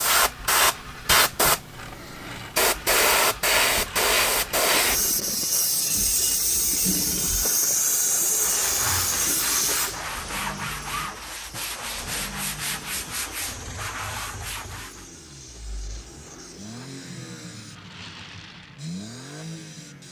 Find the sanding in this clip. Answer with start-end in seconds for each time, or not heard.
8.5-15.1.